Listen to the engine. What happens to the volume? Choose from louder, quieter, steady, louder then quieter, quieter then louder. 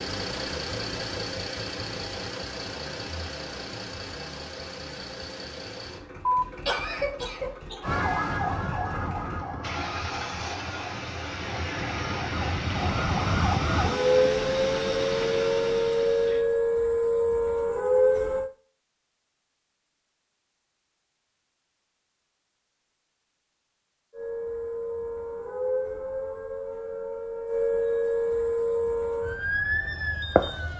quieter then louder.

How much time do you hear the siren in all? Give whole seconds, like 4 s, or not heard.
17 s.